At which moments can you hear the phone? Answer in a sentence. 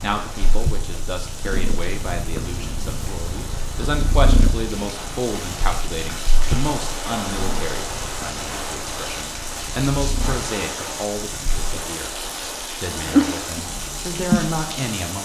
The phone can't be heard in this clip.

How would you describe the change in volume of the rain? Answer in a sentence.
The loudness of the rain goes up.